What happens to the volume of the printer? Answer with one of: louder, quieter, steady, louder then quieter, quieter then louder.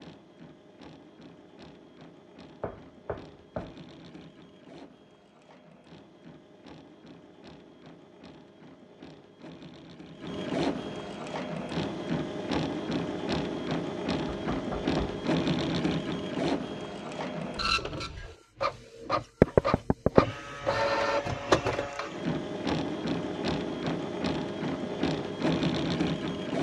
louder.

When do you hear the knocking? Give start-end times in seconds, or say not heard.
2.6-3.8, 14.2-15.2, 19.4-20.2.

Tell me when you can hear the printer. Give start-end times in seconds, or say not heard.
0.0-26.5.